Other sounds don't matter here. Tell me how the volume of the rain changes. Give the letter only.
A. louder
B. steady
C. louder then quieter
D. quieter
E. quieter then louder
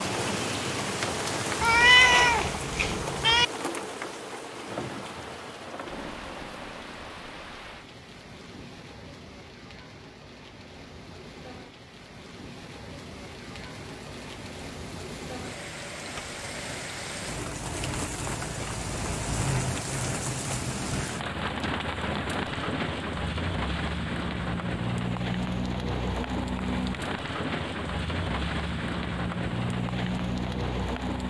E.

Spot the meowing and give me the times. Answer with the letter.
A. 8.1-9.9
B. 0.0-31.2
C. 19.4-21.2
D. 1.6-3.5
D.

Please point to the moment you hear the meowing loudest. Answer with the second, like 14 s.
2 s.